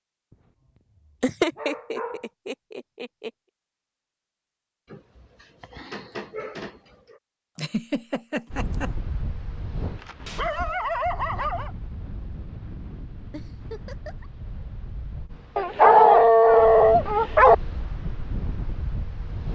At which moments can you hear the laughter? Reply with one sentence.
You can hear the laughter from 1.2 to 3.3 s, from 7.5 to 8.9 s and from 13.3 to 14.3 s.